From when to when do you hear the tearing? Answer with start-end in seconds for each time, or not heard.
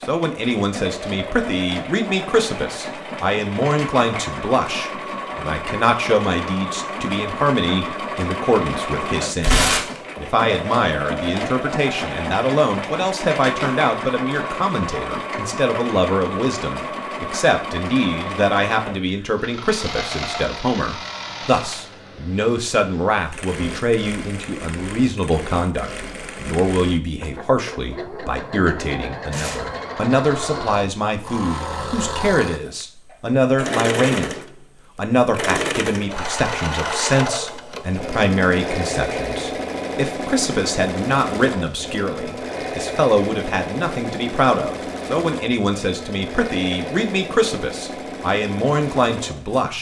9.4-10.0, 29.3-29.8.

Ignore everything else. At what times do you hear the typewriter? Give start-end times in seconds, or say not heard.
not heard.